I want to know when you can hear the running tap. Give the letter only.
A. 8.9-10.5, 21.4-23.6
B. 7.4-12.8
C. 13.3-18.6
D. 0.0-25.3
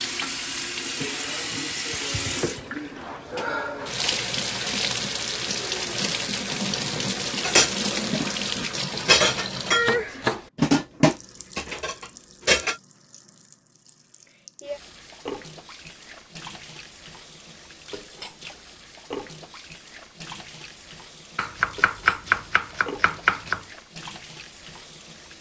D.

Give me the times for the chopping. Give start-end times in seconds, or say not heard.
8.9-10.5, 21.4-23.6.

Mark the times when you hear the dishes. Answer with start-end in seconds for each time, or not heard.
7.4-12.8.